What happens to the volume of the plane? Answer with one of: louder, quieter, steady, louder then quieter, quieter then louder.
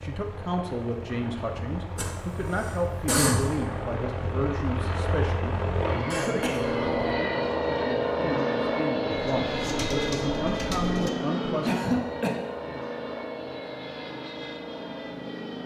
louder then quieter.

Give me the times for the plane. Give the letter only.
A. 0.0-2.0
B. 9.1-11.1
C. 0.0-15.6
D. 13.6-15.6
C.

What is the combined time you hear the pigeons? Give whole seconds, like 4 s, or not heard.
2 s.